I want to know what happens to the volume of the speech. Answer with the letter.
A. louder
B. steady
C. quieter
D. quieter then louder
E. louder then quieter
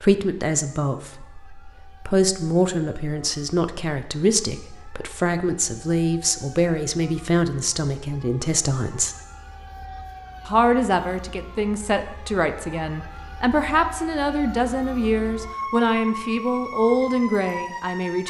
B.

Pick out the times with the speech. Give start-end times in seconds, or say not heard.
0.0-9.2, 10.4-18.2.